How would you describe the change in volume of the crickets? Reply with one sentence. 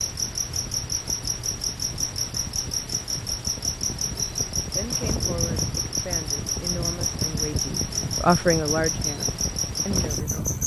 The loudness of the crickets stays about the same.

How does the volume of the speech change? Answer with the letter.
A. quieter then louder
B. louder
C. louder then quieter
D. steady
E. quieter
C.